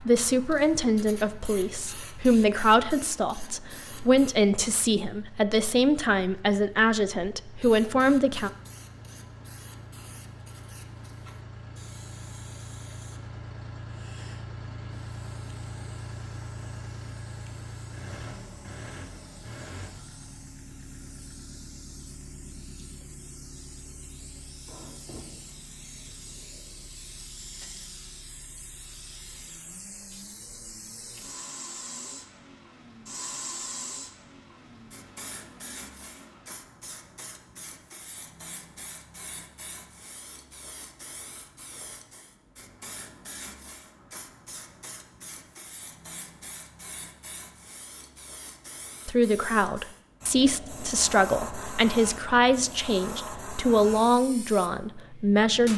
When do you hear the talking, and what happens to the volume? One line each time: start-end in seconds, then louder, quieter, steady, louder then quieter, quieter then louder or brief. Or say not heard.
0.0-8.5 steady
49.0-55.7 steady.